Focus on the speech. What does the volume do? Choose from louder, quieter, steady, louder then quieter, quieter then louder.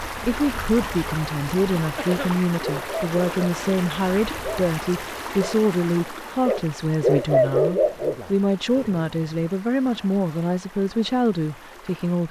steady.